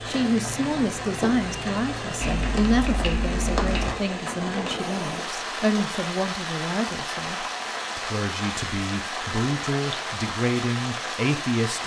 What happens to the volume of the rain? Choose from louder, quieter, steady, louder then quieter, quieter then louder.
steady.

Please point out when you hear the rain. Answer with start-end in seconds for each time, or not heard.
0.0-11.8.